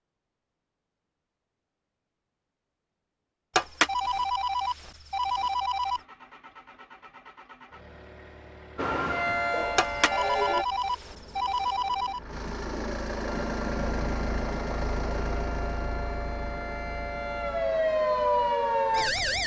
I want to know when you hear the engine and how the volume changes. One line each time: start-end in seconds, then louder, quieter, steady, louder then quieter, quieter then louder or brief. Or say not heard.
5.7-19.4 louder then quieter.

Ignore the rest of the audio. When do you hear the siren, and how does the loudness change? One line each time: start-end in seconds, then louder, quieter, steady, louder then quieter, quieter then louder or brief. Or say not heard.
8.8-10.7 brief
13.2-19.4 louder.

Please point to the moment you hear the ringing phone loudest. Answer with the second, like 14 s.
4 s.